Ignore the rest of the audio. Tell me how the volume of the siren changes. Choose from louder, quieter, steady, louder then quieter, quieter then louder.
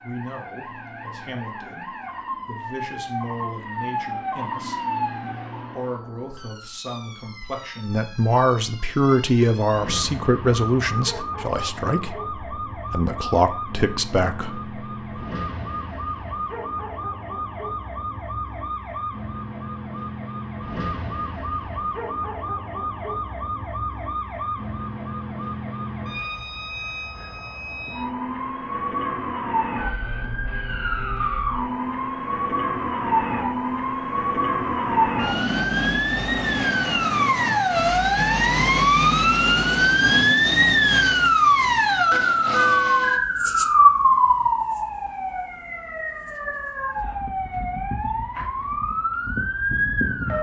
louder.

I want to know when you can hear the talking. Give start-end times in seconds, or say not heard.
0.0-15.2.